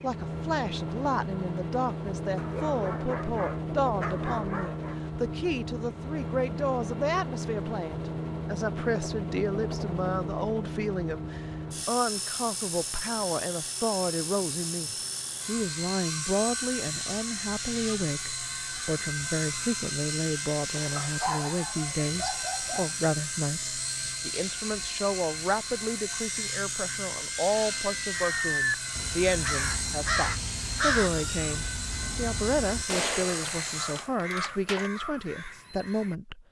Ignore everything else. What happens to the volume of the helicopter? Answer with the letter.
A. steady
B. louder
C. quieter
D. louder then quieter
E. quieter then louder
A.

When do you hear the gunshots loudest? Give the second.
33 s.